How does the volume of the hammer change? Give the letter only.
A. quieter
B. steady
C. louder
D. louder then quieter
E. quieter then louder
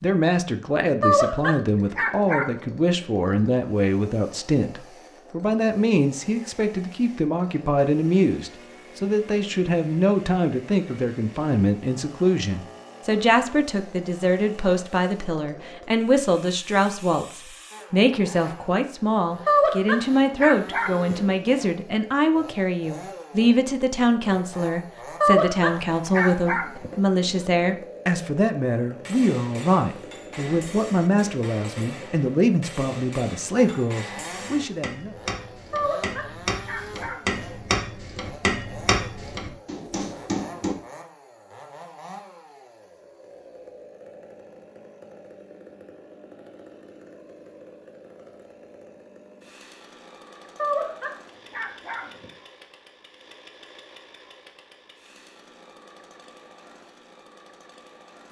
C.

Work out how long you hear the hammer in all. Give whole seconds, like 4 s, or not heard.
12 s.